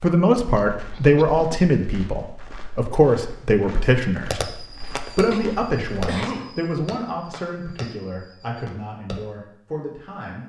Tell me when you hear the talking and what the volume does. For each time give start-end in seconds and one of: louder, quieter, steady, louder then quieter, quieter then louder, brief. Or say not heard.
0.0-10.4 quieter.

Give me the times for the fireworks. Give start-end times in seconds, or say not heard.
4.3-9.2.